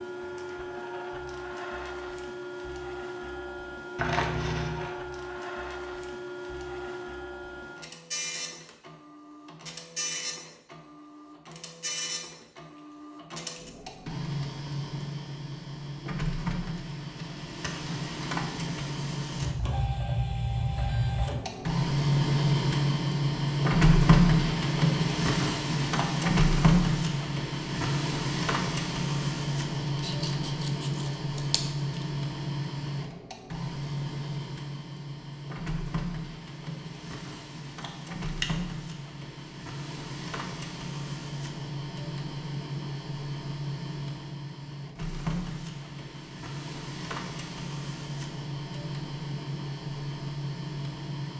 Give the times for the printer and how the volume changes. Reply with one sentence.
You can hear the printer from 0.0 to 51.3 s, getting louder then quieter.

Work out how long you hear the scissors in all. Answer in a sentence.
You can hear the scissors for 4 seconds altogether.